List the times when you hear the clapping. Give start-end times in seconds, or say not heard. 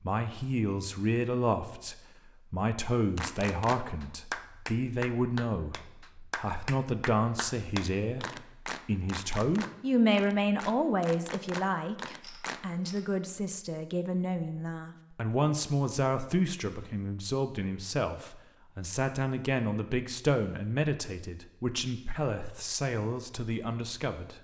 3.1-12.6.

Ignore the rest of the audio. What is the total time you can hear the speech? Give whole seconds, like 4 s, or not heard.
24 s.